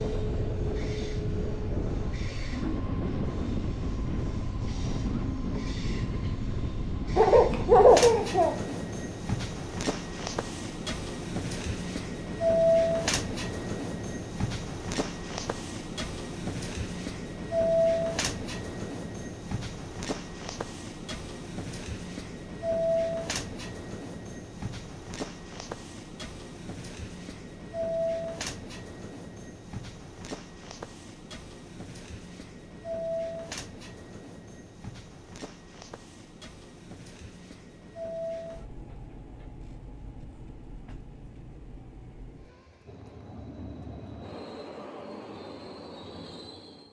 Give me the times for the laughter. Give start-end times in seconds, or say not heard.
7.2-8.6.